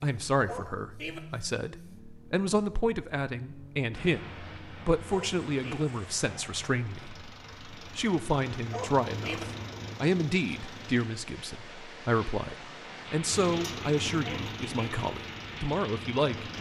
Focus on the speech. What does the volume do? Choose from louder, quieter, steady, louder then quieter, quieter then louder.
steady.